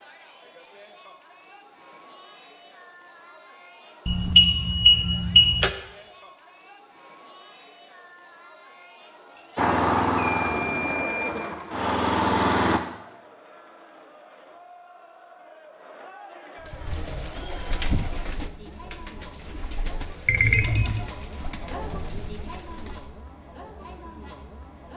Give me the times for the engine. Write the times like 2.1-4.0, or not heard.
9.6-12.8.